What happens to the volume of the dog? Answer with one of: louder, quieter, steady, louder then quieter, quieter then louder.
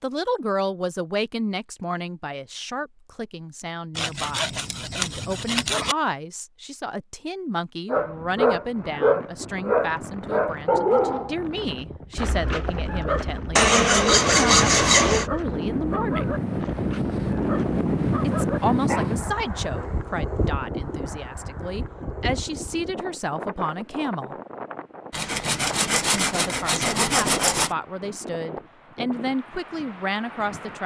quieter.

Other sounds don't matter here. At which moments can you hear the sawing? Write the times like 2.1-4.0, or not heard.
4.0-6.0, 13.6-15.3, 25.1-27.7.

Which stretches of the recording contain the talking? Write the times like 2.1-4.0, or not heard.
0.0-16.4, 18.2-24.4, 26.1-30.8.